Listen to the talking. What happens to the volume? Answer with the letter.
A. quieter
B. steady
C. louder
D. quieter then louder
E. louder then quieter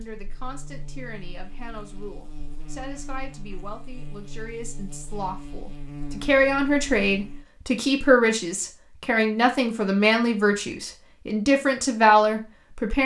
C.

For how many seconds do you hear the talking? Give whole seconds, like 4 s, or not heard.
13 s.